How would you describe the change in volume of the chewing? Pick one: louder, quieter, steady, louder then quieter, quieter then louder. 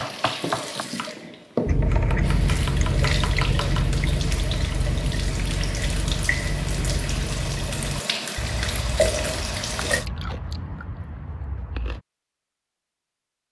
quieter.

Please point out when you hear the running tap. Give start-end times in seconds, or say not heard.
0.0-10.1.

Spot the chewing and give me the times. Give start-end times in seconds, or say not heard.
1.6-12.1.